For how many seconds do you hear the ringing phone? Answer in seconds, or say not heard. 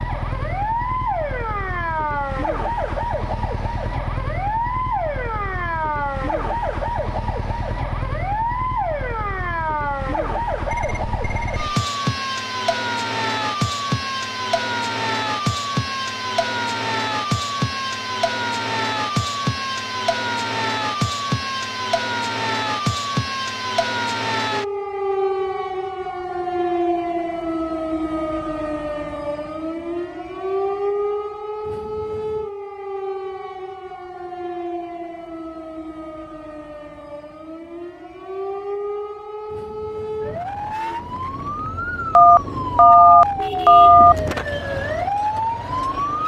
3 s.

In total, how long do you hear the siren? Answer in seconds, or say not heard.
46 s.